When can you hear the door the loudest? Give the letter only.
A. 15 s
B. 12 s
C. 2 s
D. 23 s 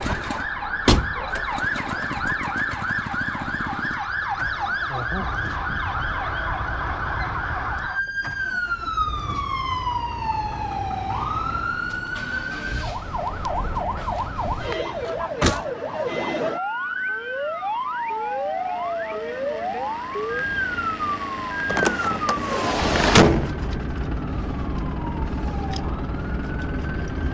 D.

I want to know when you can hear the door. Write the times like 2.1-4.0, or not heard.
0.8-1.2, 13.8-15.6, 21.6-23.5.